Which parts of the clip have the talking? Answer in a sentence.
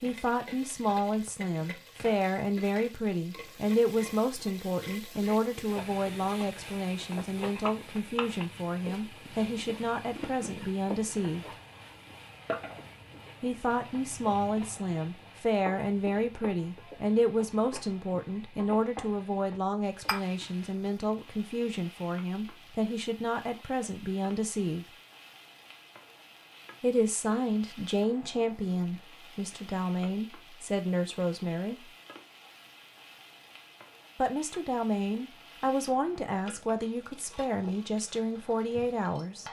You can hear the talking from 0.0 to 11.4 s, from 13.4 to 24.9 s, from 26.8 to 31.9 s and from 34.1 to 39.4 s.